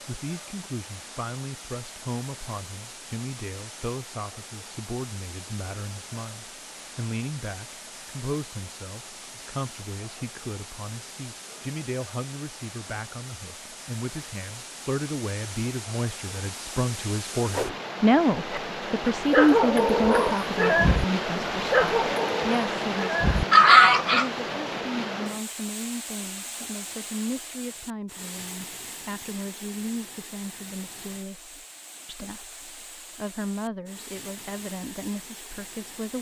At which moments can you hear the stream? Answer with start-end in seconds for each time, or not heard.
0.0-36.1.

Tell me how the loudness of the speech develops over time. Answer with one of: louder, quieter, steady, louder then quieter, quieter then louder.
louder then quieter.